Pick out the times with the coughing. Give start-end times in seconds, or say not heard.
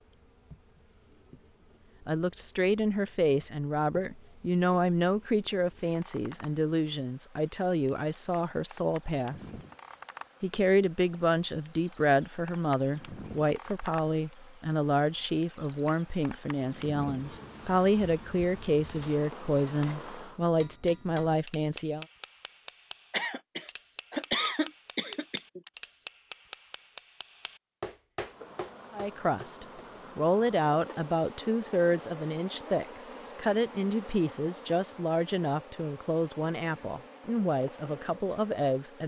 23.1-25.7.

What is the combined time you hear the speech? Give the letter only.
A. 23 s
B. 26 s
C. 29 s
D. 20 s
C.